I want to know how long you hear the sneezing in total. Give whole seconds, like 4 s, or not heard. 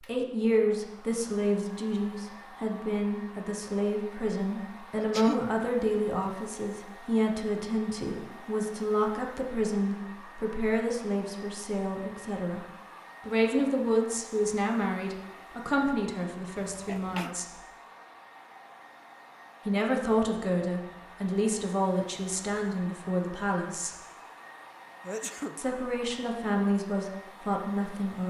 2 s.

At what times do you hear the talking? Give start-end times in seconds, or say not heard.
0.0-12.7, 13.2-17.4, 19.6-23.9, 25.6-28.2.